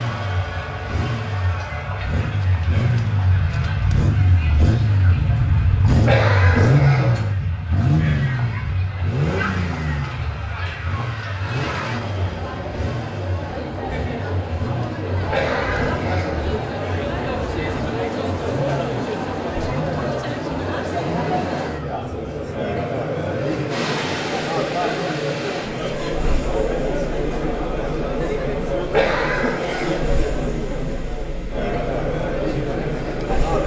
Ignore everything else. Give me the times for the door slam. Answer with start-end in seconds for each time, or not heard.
not heard.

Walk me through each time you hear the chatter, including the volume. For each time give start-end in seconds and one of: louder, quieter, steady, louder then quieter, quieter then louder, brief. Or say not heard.
0.0-33.6 louder.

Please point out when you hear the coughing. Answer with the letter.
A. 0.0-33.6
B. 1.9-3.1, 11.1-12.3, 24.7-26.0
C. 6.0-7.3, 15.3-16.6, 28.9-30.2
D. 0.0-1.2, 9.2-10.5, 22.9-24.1
C.